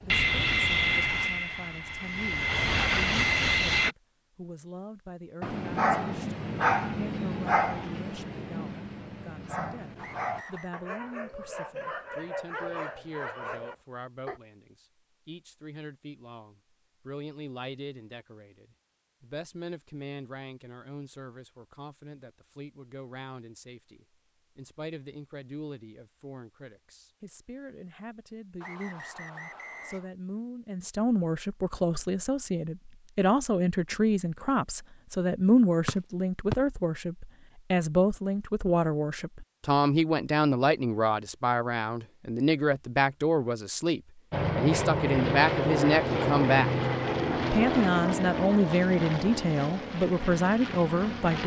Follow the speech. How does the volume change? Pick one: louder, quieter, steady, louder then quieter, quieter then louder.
louder.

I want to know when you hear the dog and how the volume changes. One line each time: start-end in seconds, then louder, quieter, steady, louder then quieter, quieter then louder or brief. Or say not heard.
5.4-14.4 quieter.